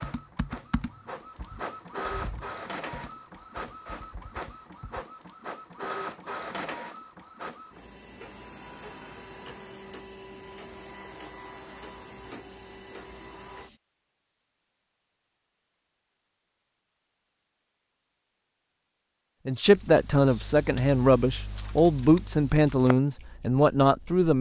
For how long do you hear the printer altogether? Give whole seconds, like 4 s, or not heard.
14 s.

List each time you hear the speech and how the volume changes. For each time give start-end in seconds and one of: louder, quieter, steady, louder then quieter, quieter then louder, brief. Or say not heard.
19.4-24.3 steady.